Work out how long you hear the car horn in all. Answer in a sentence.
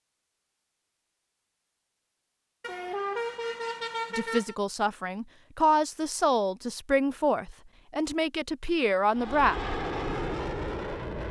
You can hear the car horn for 2 seconds altogether.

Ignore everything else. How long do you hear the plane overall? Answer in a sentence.
The plane can be heard for 2 seconds in total.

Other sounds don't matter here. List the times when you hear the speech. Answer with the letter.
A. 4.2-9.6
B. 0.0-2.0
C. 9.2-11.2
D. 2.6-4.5
A.